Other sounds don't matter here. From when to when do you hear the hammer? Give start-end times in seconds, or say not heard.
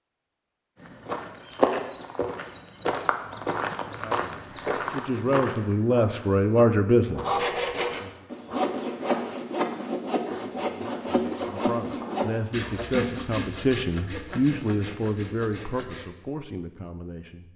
not heard.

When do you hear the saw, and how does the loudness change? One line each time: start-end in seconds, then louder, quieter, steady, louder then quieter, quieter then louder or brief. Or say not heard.
7.2-16.1 quieter.